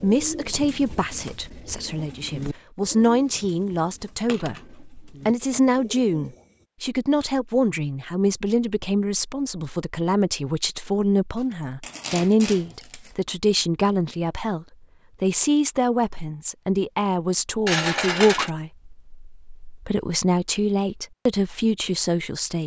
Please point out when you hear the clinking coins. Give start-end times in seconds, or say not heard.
4.2-4.7, 11.8-13.1, 17.6-18.5.